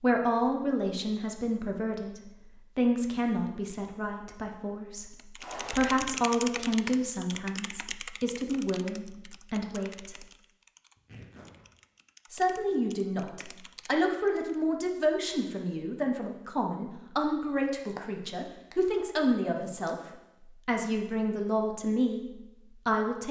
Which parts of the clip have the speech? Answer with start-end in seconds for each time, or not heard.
0.0-10.2, 12.3-19.9, 20.6-23.2.